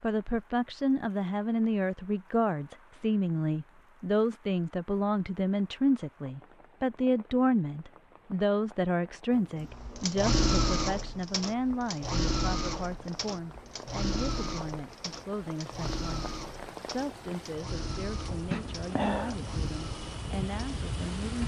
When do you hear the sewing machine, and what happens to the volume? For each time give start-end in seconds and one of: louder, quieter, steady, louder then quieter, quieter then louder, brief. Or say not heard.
9.3-21.4 quieter.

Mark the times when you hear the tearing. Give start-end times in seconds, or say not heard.
not heard.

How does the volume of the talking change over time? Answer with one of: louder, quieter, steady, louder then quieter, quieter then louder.
quieter.